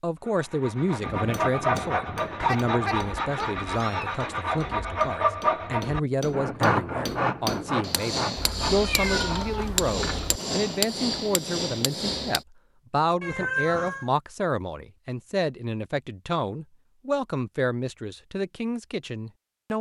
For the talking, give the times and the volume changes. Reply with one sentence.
You can hear the talking from 0.0 to 19.7 s, at a steady volume.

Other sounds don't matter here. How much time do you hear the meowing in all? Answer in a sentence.
The meowing can be heard for 5 seconds in total.